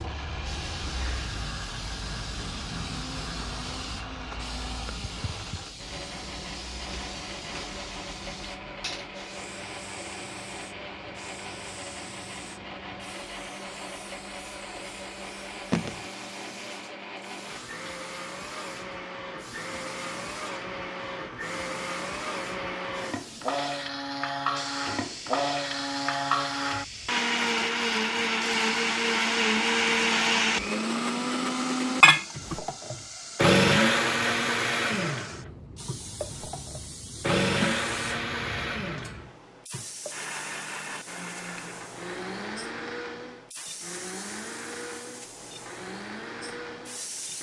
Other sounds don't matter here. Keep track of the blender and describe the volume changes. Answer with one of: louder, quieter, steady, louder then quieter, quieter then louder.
louder then quieter.